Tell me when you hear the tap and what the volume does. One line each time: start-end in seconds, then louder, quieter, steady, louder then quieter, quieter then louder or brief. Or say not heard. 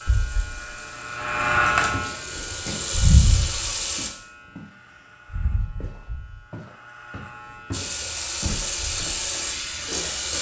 0.0-4.1 louder
7.7-10.3 brief.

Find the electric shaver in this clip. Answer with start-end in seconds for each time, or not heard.
0.0-4.1, 5.2-10.3.